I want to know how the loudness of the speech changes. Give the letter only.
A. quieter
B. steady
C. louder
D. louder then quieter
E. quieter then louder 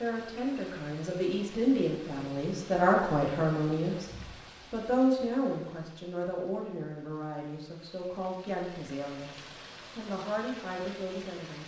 A.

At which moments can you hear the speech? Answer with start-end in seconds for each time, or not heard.
0.0-4.1, 4.7-11.6.